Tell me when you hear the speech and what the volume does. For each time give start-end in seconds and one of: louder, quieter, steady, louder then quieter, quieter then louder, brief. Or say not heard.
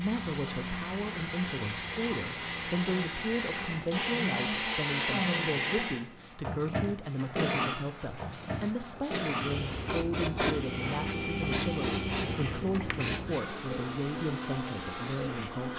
0.0-15.7 steady.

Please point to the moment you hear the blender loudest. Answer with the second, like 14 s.
5 s.